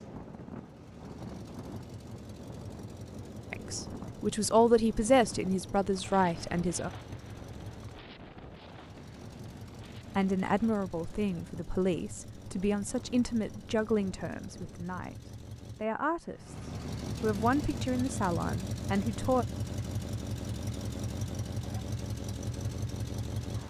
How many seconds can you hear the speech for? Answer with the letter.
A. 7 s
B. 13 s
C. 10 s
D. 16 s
B.